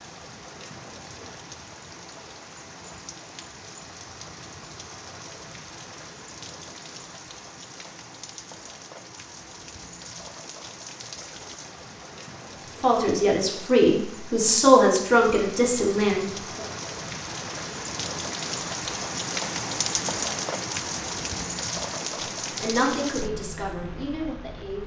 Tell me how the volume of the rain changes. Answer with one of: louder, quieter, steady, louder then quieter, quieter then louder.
louder.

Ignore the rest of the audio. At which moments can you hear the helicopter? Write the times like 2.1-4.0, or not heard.
not heard.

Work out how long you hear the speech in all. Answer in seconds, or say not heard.
6 s.